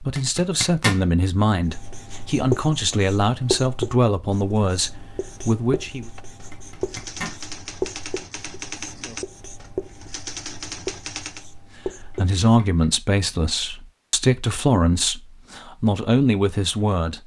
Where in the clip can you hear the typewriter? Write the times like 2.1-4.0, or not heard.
6.0-11.5.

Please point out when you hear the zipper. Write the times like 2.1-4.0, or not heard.
0.1-1.0, 6.5-7.3, 12.1-12.8.